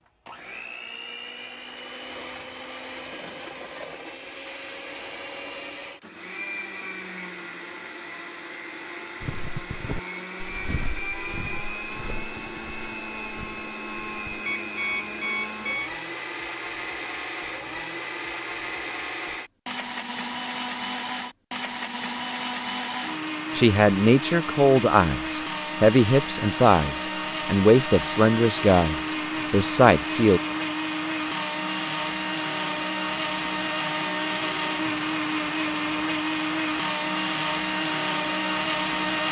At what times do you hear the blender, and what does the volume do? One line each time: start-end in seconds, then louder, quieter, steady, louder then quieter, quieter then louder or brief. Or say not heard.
0.1-39.2 louder.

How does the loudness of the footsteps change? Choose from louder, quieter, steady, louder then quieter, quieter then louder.
quieter.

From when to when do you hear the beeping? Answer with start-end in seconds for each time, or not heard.
14.4-15.9.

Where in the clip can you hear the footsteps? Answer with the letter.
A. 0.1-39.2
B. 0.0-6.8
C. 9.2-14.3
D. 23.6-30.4
C.